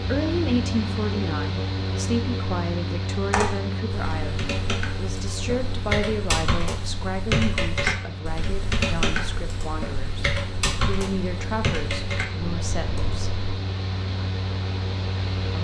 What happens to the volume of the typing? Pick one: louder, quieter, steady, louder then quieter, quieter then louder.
louder then quieter.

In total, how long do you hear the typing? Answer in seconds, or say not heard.
10 s.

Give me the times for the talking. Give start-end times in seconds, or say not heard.
0.0-13.3.